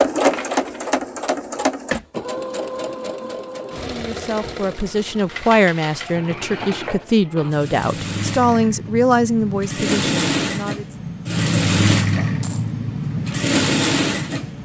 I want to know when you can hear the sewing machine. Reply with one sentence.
The sewing machine can be heard from 0.0 to 14.6 s.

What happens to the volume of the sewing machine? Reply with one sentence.
The volume of the sewing machine goes down, then up.